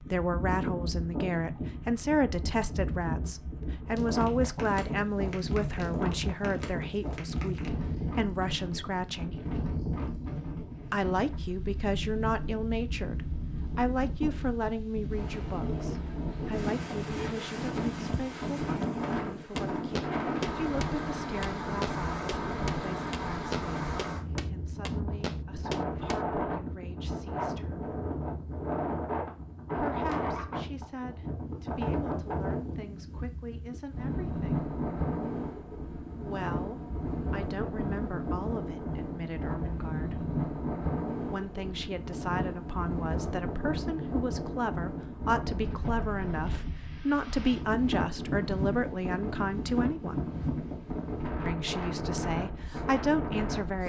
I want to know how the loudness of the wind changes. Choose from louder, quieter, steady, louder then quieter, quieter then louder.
steady.